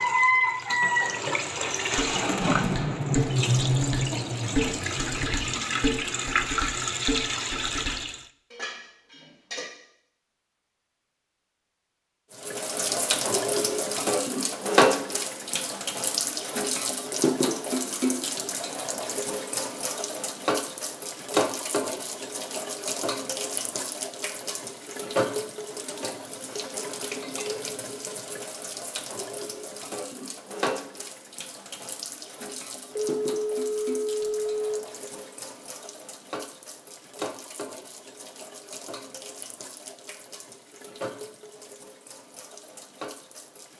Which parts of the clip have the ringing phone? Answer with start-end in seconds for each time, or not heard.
33.0-34.8.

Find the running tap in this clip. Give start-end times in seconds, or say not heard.
0.0-8.2, 12.3-43.7.